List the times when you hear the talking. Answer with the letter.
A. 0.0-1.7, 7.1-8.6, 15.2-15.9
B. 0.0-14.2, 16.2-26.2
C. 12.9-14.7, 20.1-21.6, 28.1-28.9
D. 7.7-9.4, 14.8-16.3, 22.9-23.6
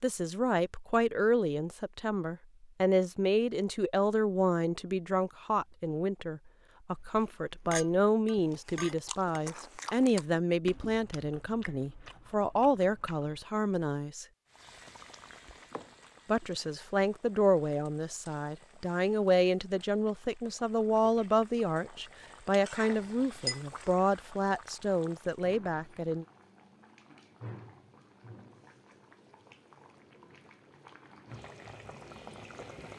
B.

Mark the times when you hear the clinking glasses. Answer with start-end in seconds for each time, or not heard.
7.7-9.4, 14.8-16.3, 22.9-23.6.